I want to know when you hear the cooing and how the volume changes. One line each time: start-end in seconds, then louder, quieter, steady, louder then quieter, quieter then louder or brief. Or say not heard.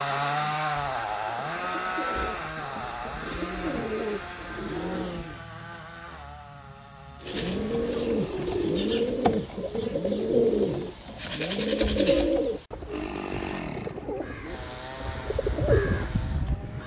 0.0-5.3 louder
7.2-16.8 quieter then louder.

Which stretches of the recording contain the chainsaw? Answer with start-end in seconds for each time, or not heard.
0.0-8.8, 12.8-16.8.